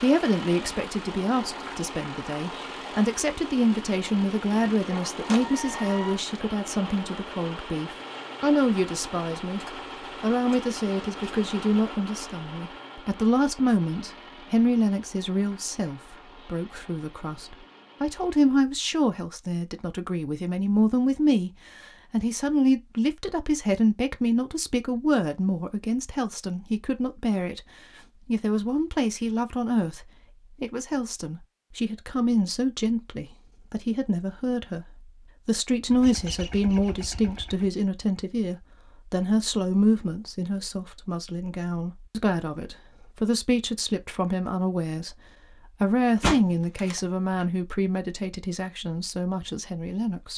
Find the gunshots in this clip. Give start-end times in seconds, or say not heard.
4.8-6.2, 46.2-47.5.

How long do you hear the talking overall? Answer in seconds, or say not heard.
49 s.